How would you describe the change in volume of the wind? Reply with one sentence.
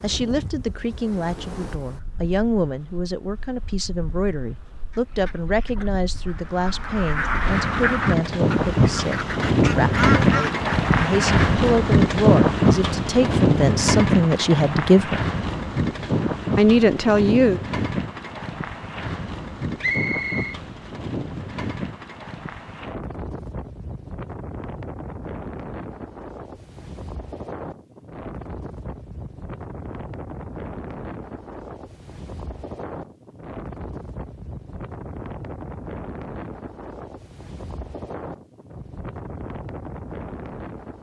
The loudness of the wind goes up, then down.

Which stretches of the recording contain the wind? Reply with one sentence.
You can hear the wind from 0.0 to 40.9 s.